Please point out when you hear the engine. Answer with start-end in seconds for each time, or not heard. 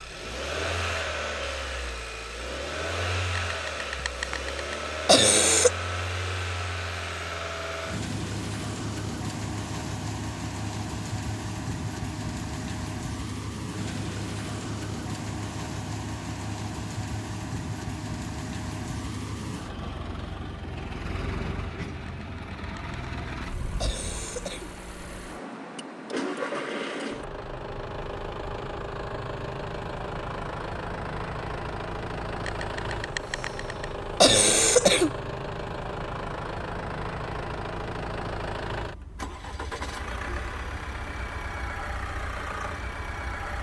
0.0-43.5.